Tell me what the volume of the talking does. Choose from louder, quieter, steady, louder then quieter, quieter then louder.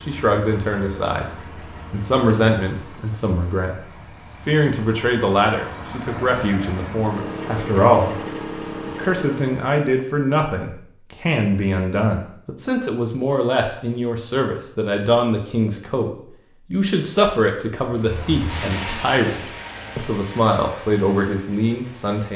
steady.